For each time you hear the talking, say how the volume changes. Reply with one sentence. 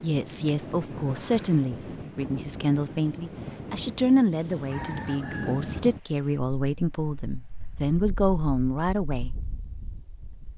The talking can be heard from 0.0 to 9.3 s, at a steady volume.